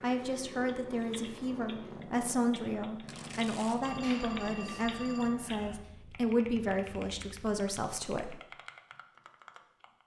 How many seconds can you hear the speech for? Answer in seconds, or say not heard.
8 s.